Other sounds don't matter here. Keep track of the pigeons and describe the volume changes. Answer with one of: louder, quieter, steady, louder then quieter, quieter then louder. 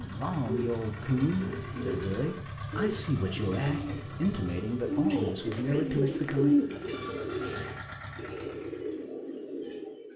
louder then quieter.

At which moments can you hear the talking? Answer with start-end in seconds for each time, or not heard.
0.0-6.5.